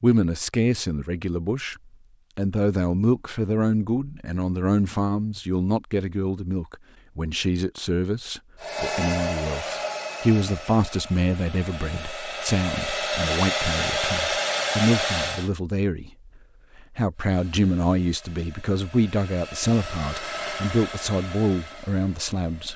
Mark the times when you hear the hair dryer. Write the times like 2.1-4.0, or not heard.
8.6-15.5, 17.1-22.7.